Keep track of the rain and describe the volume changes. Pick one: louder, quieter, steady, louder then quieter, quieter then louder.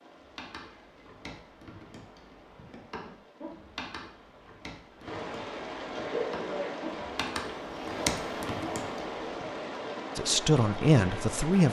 louder.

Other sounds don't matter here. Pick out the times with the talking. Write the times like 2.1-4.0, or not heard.
10.2-11.6.